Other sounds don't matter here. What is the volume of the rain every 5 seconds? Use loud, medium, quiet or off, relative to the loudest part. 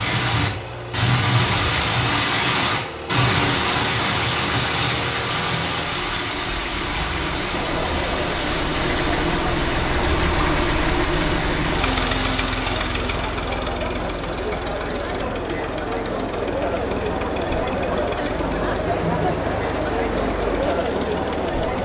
loud, medium, medium, off, off.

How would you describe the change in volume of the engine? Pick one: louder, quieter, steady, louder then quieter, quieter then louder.
louder then quieter.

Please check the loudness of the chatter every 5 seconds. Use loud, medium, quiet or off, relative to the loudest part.
off, medium, medium, loud, loud.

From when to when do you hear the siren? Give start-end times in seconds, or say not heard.
not heard.